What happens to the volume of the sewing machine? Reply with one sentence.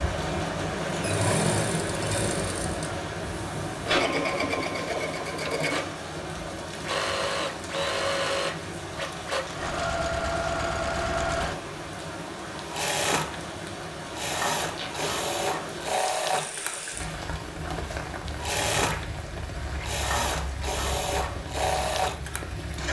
The volume of the sewing machine stays about the same.